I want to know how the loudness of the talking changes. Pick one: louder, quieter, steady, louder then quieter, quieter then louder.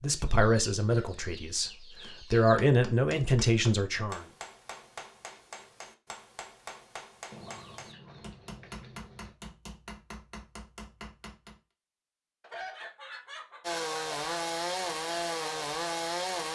quieter then louder.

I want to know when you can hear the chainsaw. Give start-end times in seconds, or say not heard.
13.6-16.5.